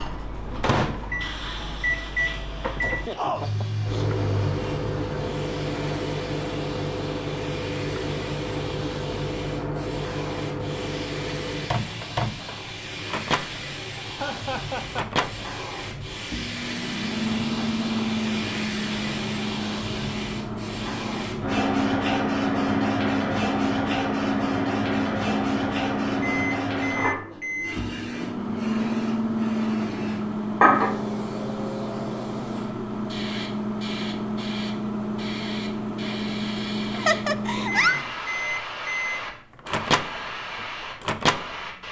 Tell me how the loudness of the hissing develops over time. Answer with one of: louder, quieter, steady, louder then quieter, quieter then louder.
louder then quieter.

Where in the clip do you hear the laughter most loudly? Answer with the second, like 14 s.
38 s.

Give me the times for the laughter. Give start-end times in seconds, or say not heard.
2.8-4.2, 14.2-15.2, 36.9-38.0.